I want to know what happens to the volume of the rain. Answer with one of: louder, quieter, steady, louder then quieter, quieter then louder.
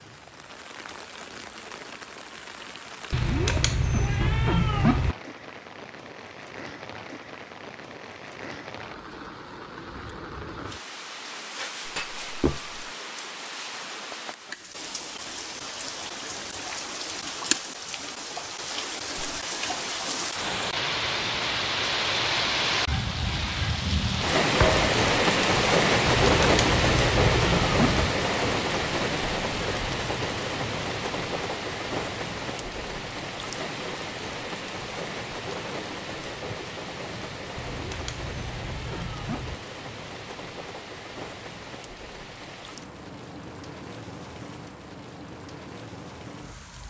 louder then quieter.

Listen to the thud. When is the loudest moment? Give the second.
25 s.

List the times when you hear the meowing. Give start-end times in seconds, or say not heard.
3.1-5.2, 26.1-28.1, 37.5-39.5.